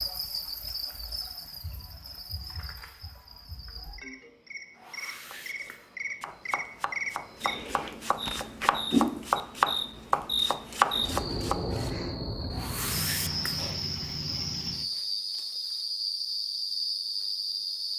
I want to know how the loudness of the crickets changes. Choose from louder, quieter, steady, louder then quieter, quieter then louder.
louder.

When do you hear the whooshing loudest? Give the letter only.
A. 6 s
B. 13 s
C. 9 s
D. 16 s
B.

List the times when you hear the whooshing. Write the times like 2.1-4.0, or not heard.
4.8-6.0, 12.5-13.7.